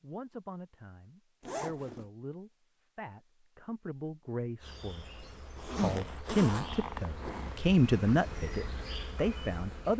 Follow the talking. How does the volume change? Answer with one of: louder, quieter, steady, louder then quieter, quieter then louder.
louder.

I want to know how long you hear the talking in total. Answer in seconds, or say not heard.
10 s.